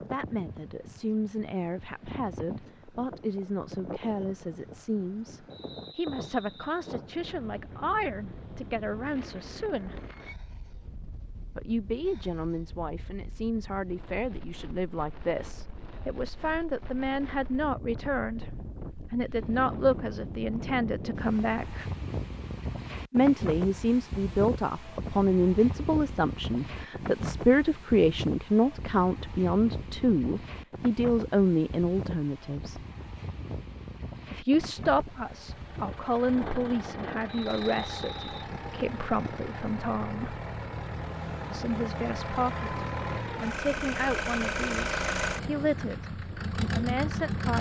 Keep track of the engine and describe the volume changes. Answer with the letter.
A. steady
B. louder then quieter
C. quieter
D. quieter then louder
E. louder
E.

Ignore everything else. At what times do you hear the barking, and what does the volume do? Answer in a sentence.
You can't hear the barking here.